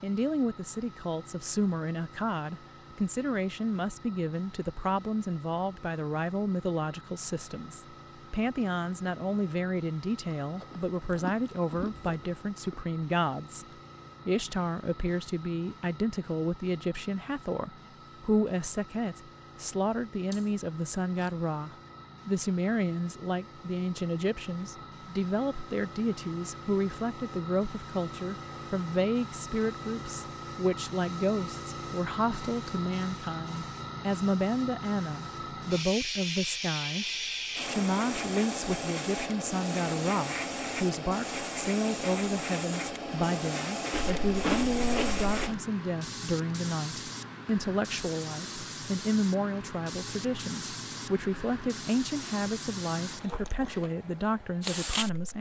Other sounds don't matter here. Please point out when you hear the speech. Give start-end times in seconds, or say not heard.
0.0-13.7, 14.2-55.3.